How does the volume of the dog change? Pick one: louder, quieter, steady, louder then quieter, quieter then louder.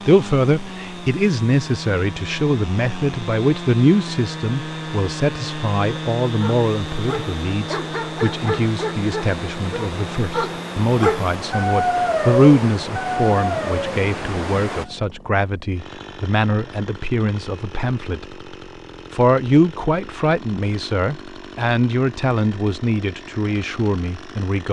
louder.